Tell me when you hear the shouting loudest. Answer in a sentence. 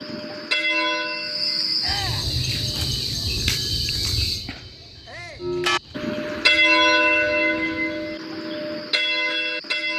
The volume of the shouting peaks at 2 seconds.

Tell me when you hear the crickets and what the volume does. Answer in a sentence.
The crickets can be heard from 0.0 to 9.9 s, getting quieter.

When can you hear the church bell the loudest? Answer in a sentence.
The loudest moment of the church bell is at 7 seconds.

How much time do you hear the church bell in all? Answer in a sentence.
You can hear the church bell for 7 seconds altogether.